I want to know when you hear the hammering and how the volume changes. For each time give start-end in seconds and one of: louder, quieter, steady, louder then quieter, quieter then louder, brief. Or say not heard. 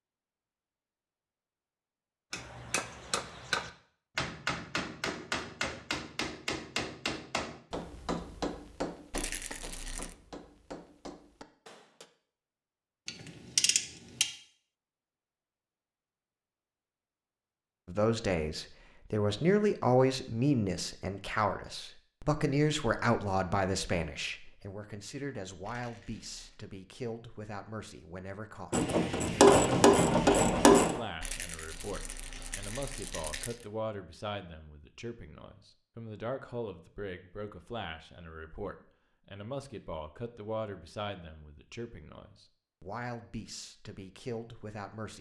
2.3-12.1 quieter.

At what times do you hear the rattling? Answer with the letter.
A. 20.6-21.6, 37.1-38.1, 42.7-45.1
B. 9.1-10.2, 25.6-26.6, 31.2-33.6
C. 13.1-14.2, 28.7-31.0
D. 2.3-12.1
B.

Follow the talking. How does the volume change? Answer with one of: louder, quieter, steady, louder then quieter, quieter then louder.
quieter.